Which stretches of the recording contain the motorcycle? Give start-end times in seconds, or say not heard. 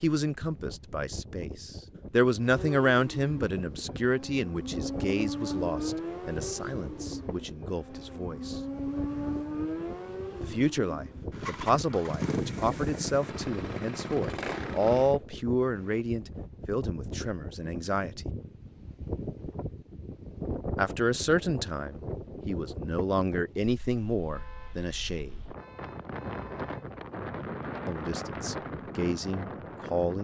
2.4-15.2.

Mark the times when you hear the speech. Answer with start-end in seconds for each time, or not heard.
0.0-8.6, 10.4-18.2, 20.8-25.4, 27.9-30.2.